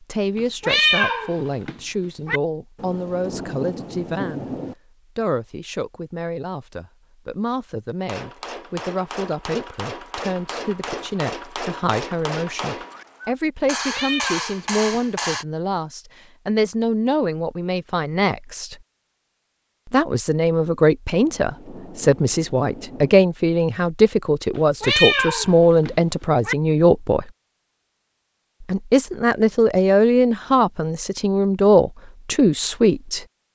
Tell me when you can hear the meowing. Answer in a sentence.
You can hear the meowing from 0.3 to 2.4 s, from 13.8 to 15.0 s and from 24.6 to 26.6 s.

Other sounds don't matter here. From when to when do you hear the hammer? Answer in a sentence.
The hammer can be heard from 8.0 to 15.4 s.